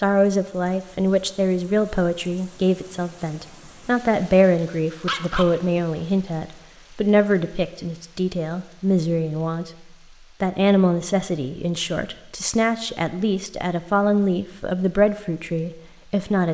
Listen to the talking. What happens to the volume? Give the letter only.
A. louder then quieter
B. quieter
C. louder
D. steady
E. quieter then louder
D.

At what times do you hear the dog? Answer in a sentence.
The dog can be heard from 5.0 to 5.8 s.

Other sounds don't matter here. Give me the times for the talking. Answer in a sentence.
The talking can be heard from 0.0 to 9.7 s and from 10.4 to 16.5 s.